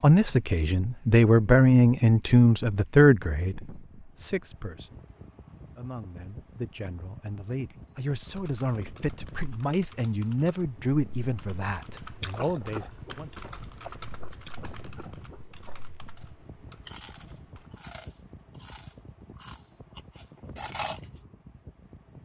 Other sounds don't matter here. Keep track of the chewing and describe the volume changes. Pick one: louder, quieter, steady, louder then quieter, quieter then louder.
quieter then louder.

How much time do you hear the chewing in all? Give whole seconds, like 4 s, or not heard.
9 s.